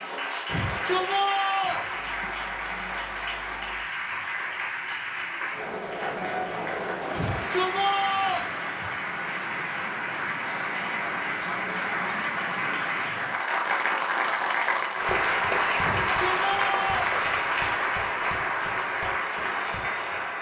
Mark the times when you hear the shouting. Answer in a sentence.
You can hear the shouting from 0.5 to 1.9 s, from 7.1 to 8.5 s and from 15.8 to 17.2 s.